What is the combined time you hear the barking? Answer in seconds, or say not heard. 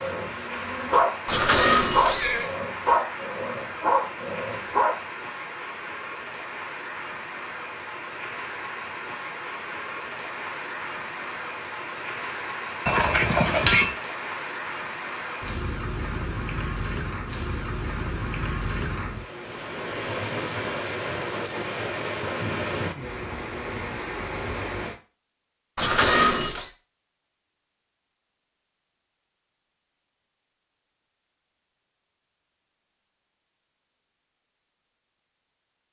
5 s.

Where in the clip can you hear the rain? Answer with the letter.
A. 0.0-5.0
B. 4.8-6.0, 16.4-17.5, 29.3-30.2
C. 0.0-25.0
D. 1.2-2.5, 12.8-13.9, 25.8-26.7
C.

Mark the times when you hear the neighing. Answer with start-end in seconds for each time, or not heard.
1.2-2.5, 12.8-13.9, 25.8-26.7.